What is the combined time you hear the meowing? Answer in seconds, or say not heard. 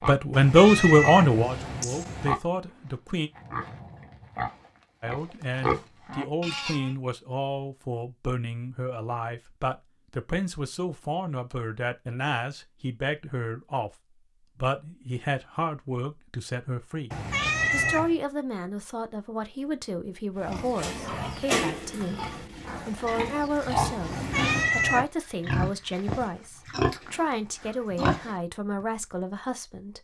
4 s.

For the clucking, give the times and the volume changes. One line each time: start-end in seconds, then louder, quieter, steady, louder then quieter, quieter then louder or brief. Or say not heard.
not heard.